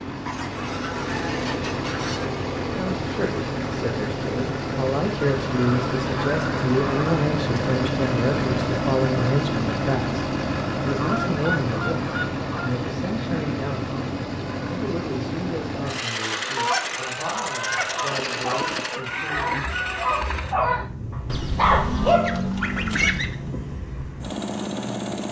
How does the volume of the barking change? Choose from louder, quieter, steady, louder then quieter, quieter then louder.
louder.